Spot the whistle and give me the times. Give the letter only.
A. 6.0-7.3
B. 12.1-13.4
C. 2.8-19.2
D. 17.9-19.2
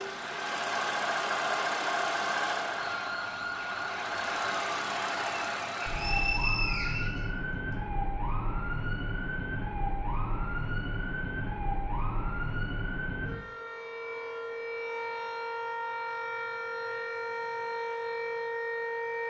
A.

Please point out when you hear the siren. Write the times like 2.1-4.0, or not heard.
2.8-19.2.